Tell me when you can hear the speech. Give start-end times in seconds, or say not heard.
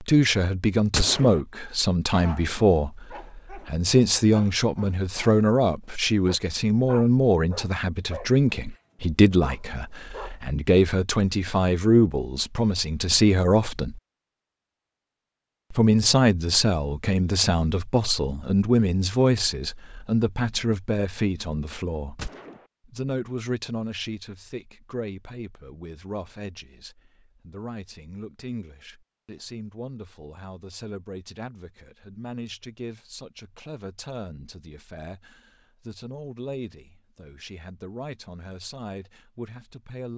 0.0-14.0, 15.7-22.2, 22.9-40.1.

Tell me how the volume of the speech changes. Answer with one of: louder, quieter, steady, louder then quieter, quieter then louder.
quieter.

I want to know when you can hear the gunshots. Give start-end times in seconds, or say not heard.
0.9-1.4, 22.1-22.6.